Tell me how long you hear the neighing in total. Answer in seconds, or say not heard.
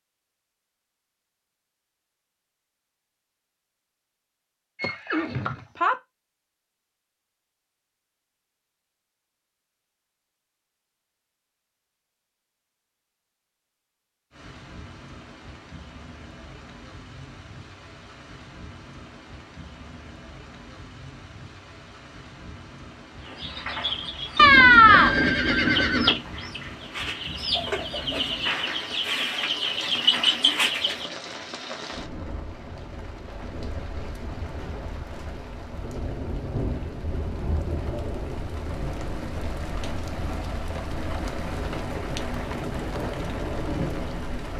3 s.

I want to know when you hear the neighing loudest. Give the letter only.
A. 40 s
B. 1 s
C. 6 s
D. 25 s
D.